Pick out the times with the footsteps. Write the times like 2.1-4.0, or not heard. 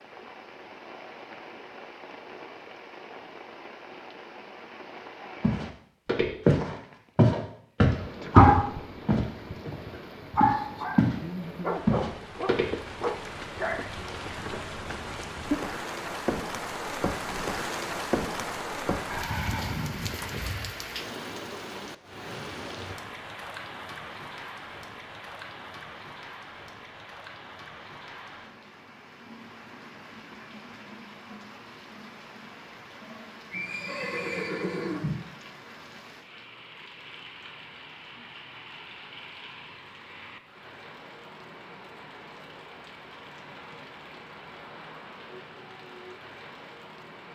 5.4-11.2, 11.8-12.7.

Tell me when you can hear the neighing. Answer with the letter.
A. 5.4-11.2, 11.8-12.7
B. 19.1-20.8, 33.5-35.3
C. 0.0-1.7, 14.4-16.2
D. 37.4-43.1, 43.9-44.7
B.